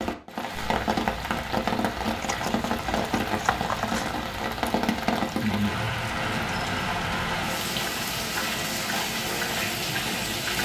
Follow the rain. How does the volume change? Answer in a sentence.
The loudness of the rain stays about the same.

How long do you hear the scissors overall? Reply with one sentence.
The scissors can be heard for 2 seconds in total.